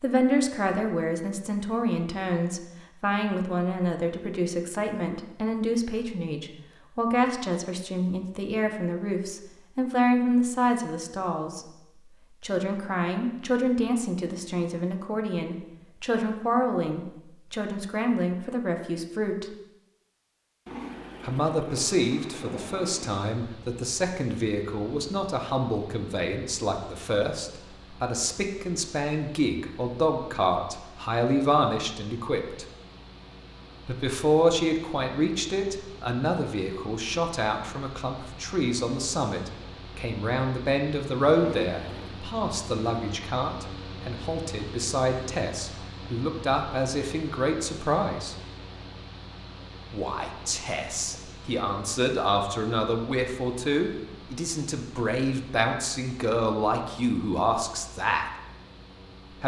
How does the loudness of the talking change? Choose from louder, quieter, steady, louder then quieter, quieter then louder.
steady.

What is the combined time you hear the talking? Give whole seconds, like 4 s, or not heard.
53 s.